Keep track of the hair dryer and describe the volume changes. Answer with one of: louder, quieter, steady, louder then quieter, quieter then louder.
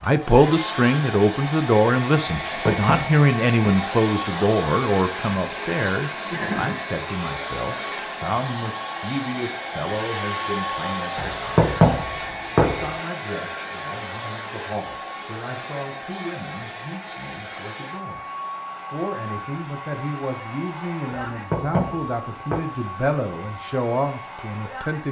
quieter.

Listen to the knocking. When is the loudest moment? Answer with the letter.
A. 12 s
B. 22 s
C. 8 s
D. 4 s
A.